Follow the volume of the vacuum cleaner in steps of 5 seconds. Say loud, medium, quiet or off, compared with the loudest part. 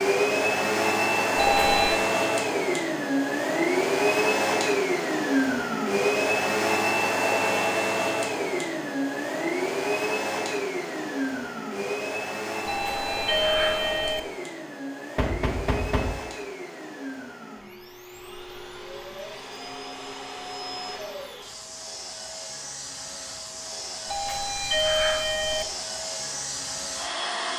loud, loud, medium, quiet, quiet, medium.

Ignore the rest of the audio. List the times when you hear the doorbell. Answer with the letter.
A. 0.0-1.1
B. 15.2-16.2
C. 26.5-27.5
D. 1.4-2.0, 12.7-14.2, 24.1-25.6
D.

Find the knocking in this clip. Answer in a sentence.
You can hear the knocking from 15.2 to 16.2 s.